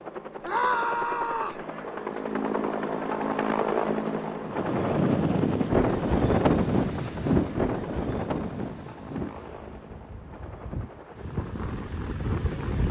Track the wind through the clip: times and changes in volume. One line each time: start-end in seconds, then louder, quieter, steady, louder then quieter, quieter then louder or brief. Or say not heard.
4.5-12.8 quieter then louder.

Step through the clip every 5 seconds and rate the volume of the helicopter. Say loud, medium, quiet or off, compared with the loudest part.
loud, medium, quiet.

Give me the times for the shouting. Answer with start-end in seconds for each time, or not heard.
0.4-1.6.